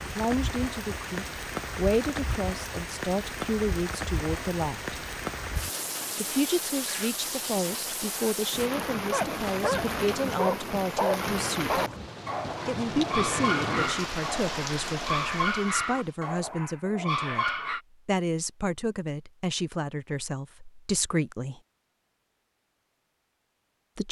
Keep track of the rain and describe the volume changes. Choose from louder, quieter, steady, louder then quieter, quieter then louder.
steady.